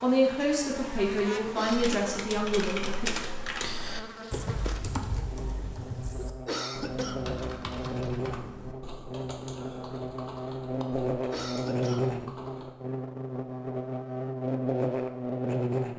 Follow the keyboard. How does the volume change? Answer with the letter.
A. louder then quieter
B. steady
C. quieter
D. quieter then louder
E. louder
C.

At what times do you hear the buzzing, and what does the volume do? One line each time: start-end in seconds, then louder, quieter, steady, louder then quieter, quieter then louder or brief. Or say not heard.
0.0-15.9 louder.